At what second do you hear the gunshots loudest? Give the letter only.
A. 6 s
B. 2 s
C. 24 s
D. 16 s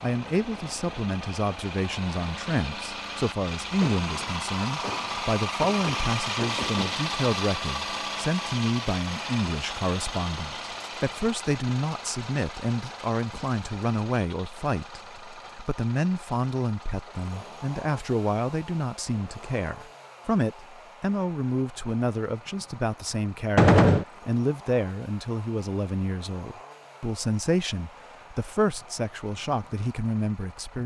C.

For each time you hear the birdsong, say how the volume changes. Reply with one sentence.
You can't hear the birdsong here.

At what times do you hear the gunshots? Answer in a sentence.
You can hear the gunshots from 3.6 to 7.1 s and from 23.6 to 24.1 s.